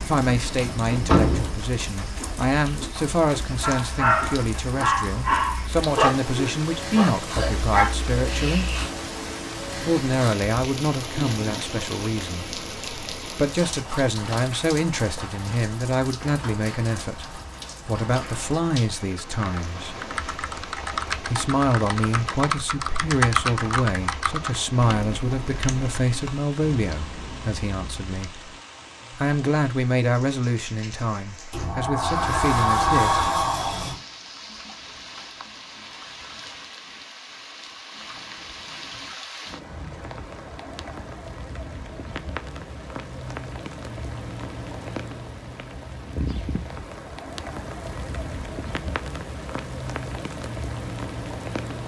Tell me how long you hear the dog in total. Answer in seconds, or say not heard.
5 s.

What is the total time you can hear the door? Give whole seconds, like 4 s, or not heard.
4 s.